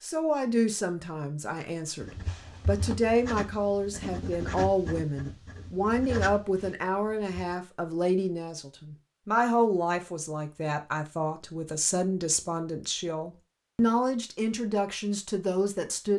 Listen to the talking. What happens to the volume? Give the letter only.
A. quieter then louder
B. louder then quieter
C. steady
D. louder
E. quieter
C.